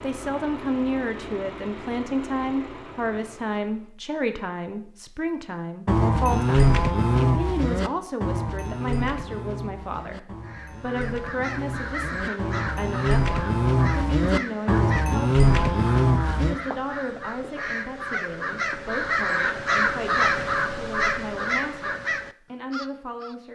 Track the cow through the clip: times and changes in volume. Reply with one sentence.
You can hear the cow from 5.8 to 16.6 s, getting quieter then louder.